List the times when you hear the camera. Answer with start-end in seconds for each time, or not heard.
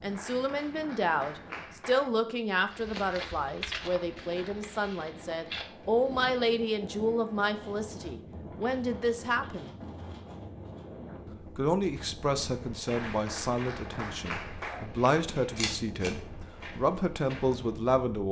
15.6-16.1.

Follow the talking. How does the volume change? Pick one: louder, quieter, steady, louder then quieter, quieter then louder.
steady.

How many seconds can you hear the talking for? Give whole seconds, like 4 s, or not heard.
16 s.